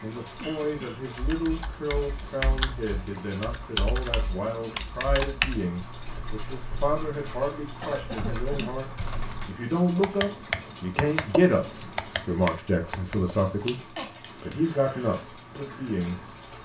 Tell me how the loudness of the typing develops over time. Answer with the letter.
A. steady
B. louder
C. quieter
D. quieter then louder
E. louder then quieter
D.